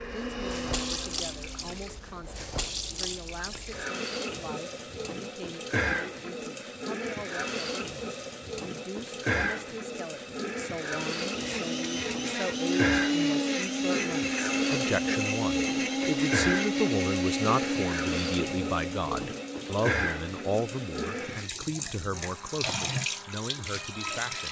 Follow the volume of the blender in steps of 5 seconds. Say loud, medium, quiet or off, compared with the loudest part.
medium, off, loud, loud, quiet.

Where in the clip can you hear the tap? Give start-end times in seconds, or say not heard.
0.0-24.4.